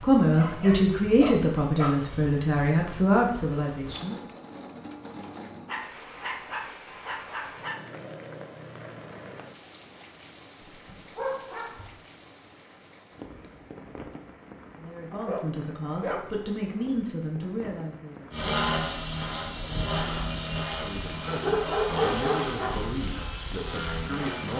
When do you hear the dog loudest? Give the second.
22 s.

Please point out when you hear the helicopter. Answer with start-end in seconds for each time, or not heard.
18.3-24.5.